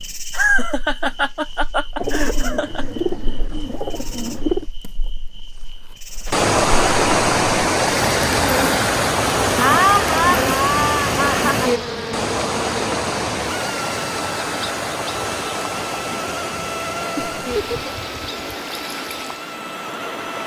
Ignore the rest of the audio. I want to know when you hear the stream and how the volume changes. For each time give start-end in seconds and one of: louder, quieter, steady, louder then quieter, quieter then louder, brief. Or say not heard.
6.2-20.4 quieter.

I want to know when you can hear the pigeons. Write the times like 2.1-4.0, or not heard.
1.9-4.7.